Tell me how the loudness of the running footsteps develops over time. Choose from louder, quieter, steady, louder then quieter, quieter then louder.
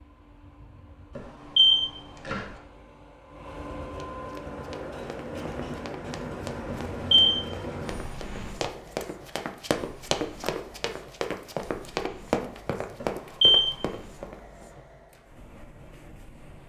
louder.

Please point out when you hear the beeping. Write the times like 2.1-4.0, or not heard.
1.1-2.4, 6.7-7.3, 13.0-13.7.